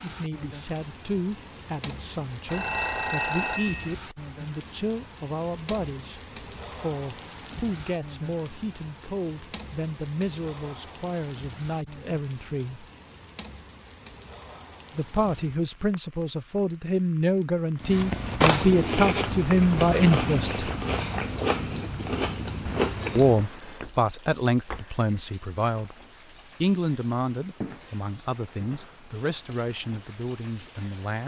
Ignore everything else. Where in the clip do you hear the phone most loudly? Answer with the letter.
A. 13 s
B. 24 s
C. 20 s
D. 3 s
D.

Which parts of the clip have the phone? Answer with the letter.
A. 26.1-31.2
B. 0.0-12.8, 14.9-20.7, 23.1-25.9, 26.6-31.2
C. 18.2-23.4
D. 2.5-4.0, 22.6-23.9
D.